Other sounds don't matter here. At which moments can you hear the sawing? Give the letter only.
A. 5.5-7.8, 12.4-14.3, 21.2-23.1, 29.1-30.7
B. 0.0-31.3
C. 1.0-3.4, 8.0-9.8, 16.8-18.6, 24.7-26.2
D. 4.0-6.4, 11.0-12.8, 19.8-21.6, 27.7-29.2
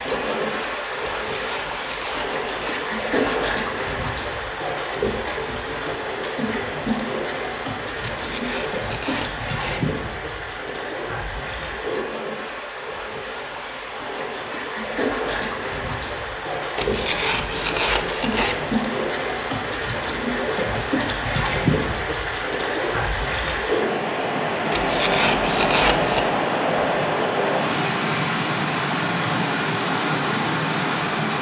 C.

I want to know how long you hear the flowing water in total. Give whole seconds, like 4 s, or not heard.
31 s.